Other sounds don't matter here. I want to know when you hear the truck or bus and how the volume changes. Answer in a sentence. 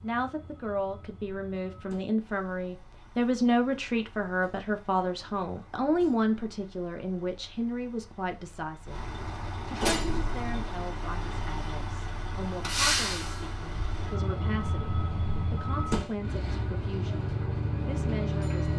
The truck or bus can be heard from 0.0 to 18.7 s, getting louder.